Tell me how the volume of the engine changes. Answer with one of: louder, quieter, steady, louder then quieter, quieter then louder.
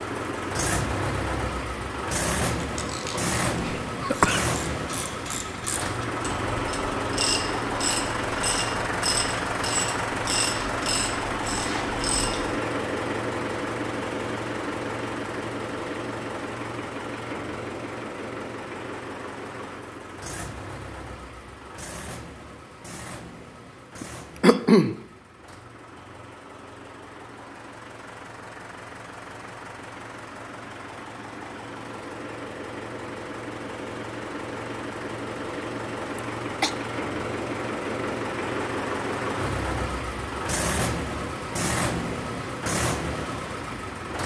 quieter then louder.